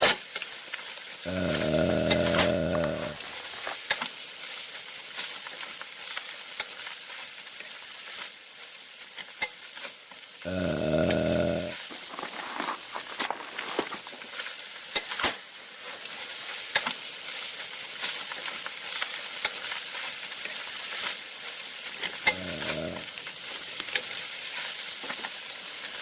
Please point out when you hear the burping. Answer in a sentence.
The burping can be heard from 1.2 to 3.1 s, from 10.4 to 11.8 s and from 22.2 to 23.1 s.